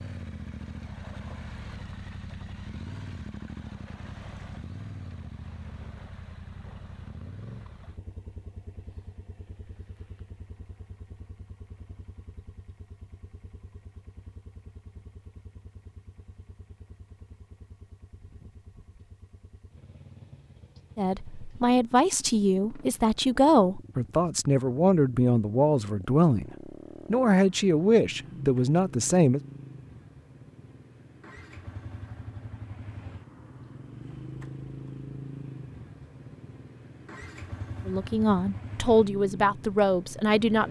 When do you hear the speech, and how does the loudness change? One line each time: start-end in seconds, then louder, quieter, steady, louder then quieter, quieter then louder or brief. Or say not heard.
20.9-29.4 steady
37.9-40.6 brief.